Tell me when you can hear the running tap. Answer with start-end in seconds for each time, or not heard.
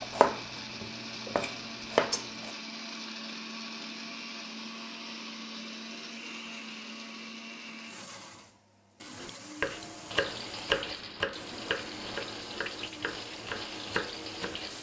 10.1-14.7.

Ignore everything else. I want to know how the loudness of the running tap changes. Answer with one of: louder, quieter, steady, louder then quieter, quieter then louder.
steady.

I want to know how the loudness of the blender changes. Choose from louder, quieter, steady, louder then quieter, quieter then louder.
quieter.